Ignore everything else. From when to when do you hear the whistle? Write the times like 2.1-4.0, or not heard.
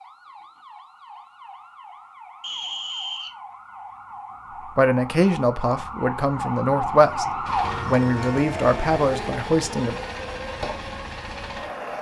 2.4-3.4.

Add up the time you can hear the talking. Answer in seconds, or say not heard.
5 s.